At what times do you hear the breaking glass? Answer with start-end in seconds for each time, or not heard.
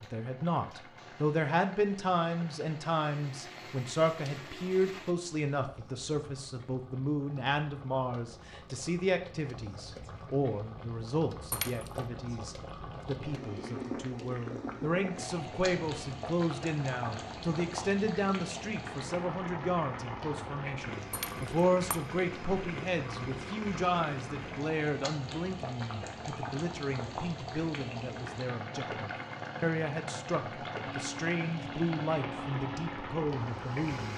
11.5-12.0, 21.1-22.0.